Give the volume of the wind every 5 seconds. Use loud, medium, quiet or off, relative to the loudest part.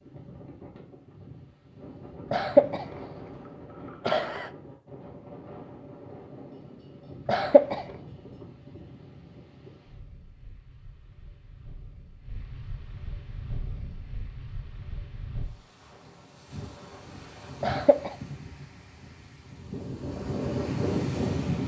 quiet, quiet, quiet, quiet, loud.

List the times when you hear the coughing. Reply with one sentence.
The coughing can be heard from 2.3 to 2.9 s, from 4.0 to 4.5 s, from 7.2 to 7.8 s and from 17.6 to 18.1 s.